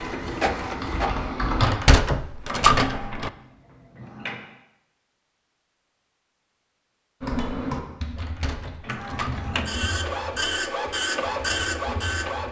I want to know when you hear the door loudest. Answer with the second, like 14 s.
3 s.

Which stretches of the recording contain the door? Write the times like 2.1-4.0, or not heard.
1.6-3.3, 8.2-9.4.